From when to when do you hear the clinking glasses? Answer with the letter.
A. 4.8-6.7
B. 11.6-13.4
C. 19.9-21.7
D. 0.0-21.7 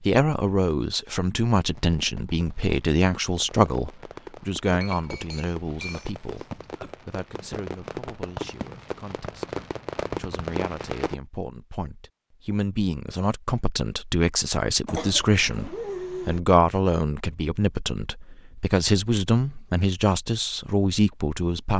A.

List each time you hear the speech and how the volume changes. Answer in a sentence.
You can hear the speech from 0.0 to 21.7 s, getting quieter then louder.